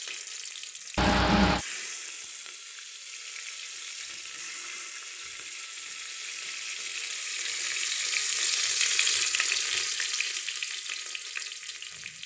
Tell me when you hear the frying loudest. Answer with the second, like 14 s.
9 s.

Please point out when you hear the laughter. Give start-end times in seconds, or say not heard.
0.9-1.6.